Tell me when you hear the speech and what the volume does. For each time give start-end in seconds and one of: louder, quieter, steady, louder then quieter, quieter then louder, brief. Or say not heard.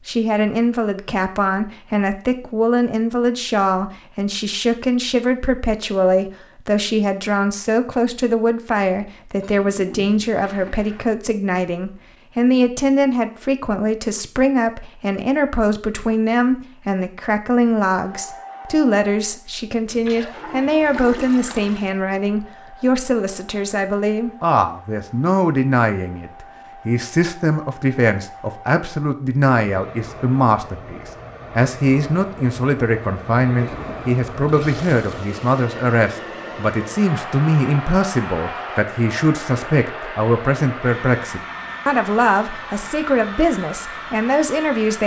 0.1-45.0 steady.